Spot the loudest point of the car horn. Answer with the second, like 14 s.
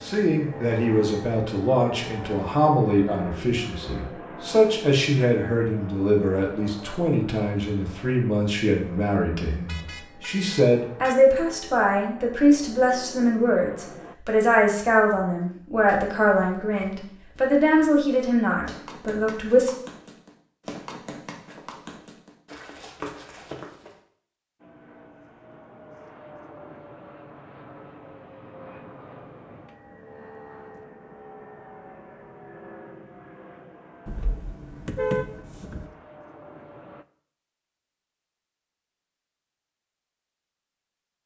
35 s.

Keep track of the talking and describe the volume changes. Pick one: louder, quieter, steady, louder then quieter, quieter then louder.
steady.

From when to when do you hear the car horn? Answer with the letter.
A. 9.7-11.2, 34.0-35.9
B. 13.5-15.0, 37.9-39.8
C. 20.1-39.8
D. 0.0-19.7
A.